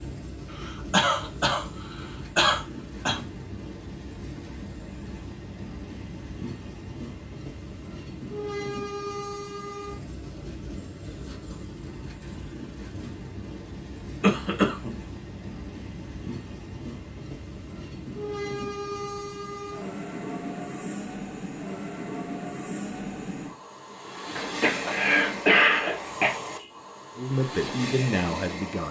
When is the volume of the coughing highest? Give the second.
26 s.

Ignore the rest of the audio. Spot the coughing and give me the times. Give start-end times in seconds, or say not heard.
0.6-3.2, 14.2-14.9, 24.4-26.4.